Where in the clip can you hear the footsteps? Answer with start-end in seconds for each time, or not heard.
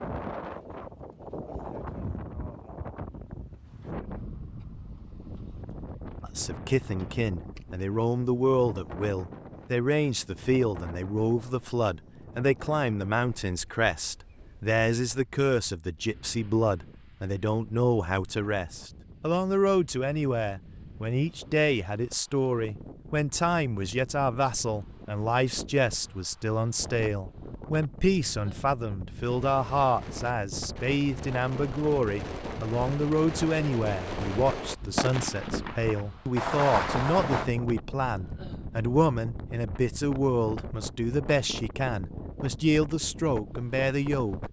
not heard.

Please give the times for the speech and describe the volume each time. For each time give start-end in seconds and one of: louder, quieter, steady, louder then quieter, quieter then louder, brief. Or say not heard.
6.2-44.4 steady.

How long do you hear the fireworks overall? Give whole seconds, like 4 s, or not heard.
8 s.